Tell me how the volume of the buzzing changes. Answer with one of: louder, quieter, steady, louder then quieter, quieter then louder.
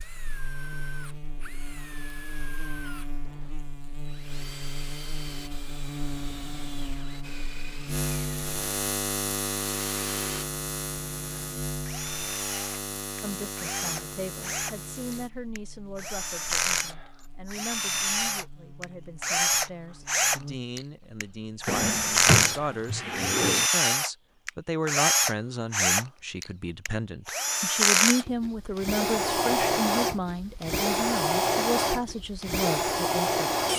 louder then quieter.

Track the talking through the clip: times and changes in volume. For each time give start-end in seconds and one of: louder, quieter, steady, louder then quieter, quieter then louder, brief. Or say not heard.
13.2-33.5 louder.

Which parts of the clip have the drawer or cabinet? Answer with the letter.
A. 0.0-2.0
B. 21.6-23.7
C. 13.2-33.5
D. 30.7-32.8
B.